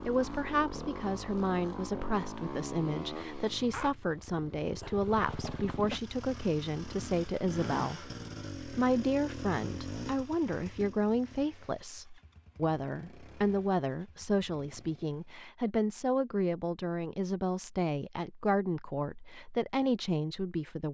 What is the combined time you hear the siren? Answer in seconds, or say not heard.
not heard.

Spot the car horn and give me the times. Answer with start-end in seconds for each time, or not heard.
not heard.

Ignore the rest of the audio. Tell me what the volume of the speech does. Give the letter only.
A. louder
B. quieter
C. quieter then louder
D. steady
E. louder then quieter
D.